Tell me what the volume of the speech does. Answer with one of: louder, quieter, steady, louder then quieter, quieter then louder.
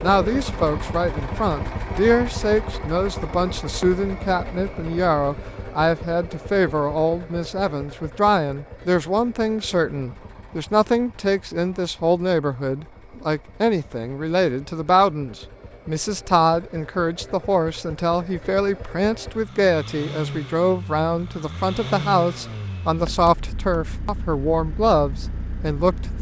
steady.